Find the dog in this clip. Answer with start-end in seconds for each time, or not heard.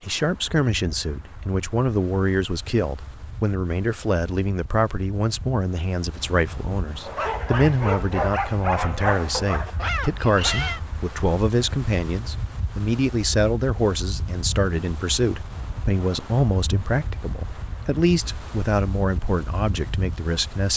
7.0-10.8.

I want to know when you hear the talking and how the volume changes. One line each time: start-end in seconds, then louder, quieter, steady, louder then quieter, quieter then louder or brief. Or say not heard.
0.0-20.7 steady.